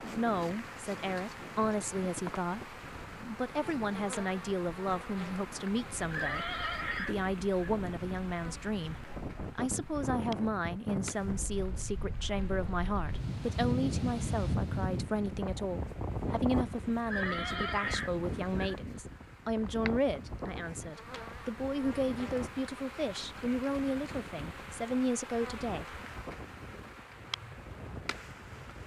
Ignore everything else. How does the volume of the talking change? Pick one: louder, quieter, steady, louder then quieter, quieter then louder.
steady.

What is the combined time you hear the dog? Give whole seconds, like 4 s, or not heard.
not heard.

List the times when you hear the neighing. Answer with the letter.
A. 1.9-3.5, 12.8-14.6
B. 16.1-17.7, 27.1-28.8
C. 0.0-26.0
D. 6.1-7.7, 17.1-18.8
D.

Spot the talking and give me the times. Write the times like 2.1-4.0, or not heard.
0.0-26.0.